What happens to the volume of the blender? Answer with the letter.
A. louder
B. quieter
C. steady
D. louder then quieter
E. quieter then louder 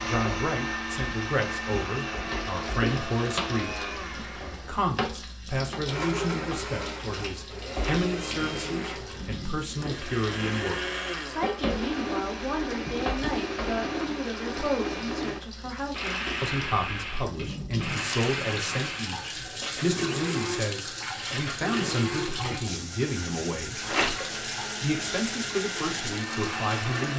C.